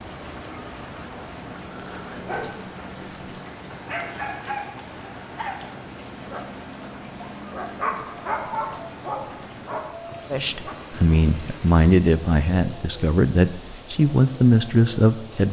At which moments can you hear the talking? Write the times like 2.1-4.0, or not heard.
10.3-15.4.